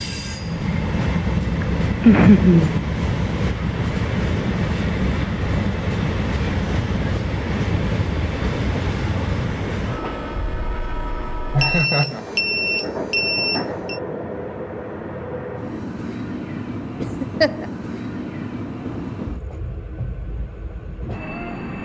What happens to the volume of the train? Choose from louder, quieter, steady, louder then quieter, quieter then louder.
quieter.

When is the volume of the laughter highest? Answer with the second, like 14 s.
2 s.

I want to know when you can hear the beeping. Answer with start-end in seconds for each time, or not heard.
11.6-14.0.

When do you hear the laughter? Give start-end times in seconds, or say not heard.
1.6-2.8, 11.5-12.2, 17.0-17.6.